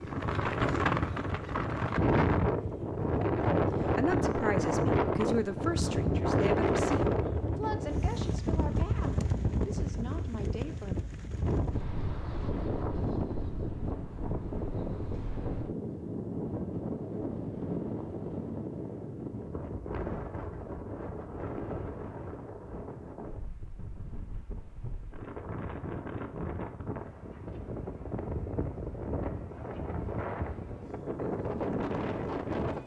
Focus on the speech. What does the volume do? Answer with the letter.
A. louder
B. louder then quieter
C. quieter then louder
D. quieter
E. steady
D.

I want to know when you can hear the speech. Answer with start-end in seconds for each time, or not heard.
3.5-10.9.